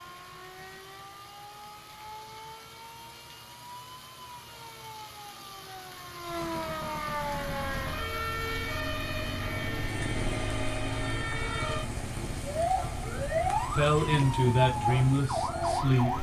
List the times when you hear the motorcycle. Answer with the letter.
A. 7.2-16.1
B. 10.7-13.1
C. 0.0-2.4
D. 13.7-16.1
A.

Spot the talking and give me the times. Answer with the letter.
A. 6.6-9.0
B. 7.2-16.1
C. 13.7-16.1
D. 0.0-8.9
C.